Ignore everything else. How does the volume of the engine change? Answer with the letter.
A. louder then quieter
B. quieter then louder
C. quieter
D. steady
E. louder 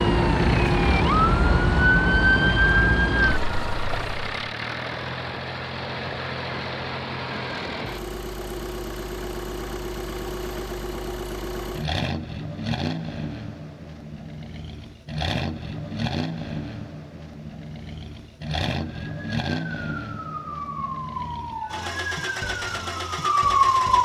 D.